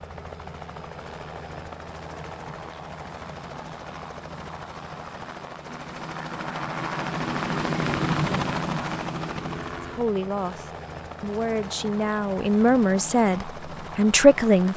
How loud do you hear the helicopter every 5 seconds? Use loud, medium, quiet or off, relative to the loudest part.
medium, loud, medium.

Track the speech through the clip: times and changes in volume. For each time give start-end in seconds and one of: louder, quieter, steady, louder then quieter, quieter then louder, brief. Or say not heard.
9.9-14.7 louder.